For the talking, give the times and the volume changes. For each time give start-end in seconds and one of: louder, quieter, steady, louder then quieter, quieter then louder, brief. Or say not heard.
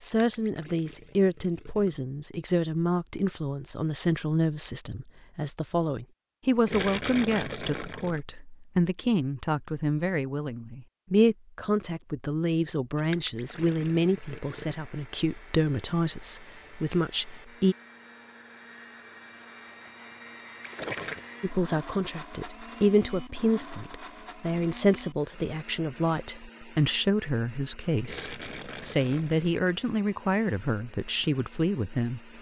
0.0-17.8 steady
21.4-32.3 steady.